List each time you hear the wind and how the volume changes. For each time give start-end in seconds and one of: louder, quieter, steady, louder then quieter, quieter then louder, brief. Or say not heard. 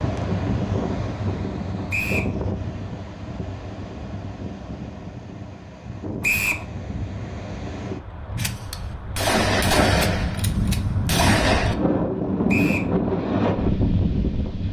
0.0-14.6 quieter then louder.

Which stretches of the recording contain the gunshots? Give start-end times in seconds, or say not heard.
8.3-11.8.